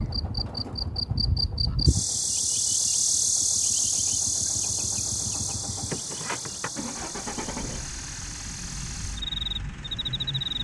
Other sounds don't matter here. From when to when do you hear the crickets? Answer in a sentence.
You can hear the crickets from 0.0 to 10.5 s.